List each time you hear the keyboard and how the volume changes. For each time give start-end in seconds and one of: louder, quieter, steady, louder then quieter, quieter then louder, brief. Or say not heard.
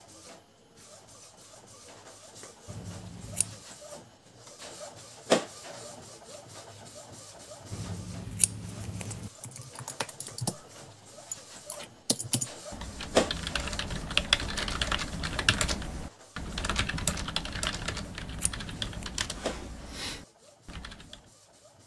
9.3-21.2 louder then quieter.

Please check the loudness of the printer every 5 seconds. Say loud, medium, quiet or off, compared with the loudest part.
quiet, loud, loud, medium, quiet.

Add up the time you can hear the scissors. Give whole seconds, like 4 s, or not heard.
4 s.